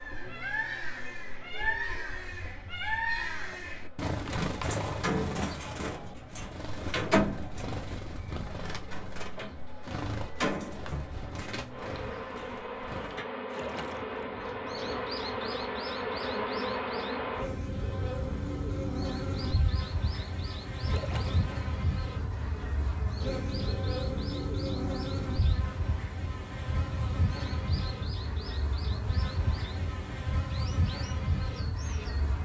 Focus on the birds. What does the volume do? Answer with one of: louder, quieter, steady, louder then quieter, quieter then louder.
quieter.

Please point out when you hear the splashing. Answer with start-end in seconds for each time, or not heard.
13.5-14.2, 20.9-21.5.